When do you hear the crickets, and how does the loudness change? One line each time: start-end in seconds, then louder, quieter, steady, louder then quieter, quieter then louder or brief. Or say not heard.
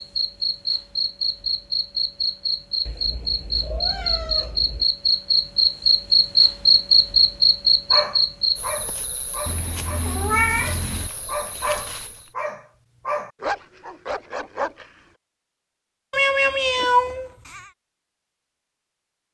0.0-12.3 louder then quieter.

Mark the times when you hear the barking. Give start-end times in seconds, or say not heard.
7.9-14.9.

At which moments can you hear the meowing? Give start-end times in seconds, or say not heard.
2.9-4.8, 9.4-11.1, 16.1-17.6.